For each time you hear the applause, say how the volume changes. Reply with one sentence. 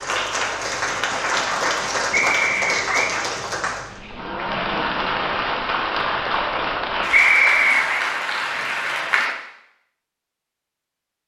You can hear the applause from 0.0 to 9.3 s, at a steady volume.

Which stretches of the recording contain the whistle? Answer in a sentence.
The whistle can be heard from 2.1 to 3.1 s and from 7.1 to 7.8 s.